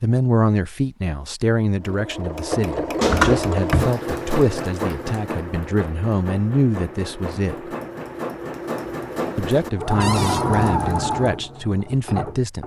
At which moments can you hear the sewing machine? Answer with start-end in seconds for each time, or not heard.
1.8-12.6.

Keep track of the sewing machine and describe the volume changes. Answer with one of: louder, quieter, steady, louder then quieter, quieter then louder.
quieter then louder.